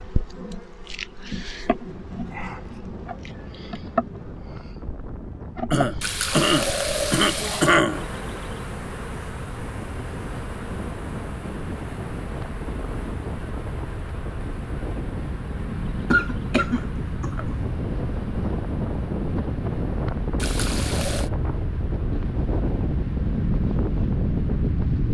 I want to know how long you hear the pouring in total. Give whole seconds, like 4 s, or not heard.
3 s.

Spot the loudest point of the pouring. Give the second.
7 s.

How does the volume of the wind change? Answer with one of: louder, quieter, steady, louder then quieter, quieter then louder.
louder.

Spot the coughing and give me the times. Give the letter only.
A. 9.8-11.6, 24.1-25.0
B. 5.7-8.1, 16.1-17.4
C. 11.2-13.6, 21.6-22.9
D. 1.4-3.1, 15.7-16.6
B.